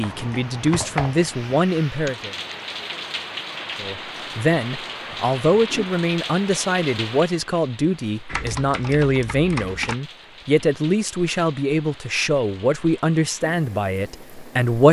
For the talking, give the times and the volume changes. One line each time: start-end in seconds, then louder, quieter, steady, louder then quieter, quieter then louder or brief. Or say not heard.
0.0-2.4 brief
3.8-14.8 steady.